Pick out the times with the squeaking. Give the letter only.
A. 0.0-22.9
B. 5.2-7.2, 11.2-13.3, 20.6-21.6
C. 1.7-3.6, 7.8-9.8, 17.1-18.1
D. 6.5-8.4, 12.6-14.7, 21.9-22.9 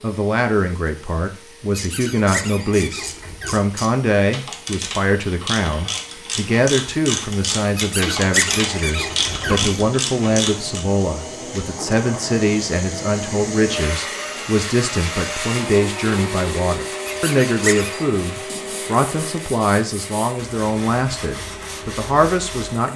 C.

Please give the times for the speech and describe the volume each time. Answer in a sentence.
The speech can be heard from 0.0 to 22.9 s, at a steady volume.